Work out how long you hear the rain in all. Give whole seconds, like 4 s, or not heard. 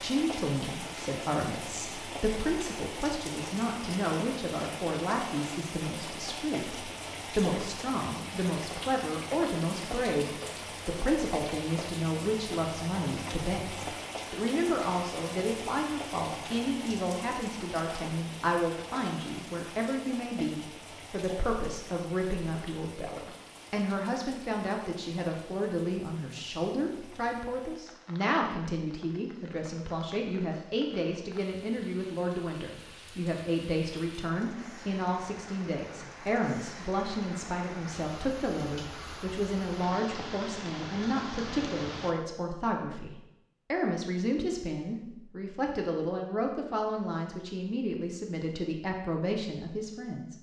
42 s.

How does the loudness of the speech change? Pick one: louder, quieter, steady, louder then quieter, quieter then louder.
steady.